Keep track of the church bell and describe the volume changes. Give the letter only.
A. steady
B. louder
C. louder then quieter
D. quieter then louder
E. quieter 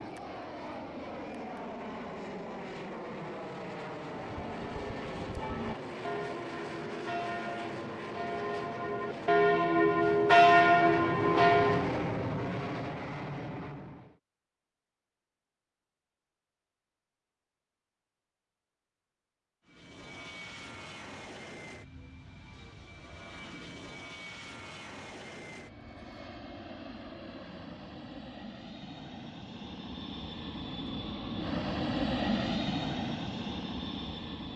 B.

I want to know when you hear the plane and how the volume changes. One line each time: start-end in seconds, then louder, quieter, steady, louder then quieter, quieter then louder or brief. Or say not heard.
0.0-14.2 louder
19.6-34.5 louder.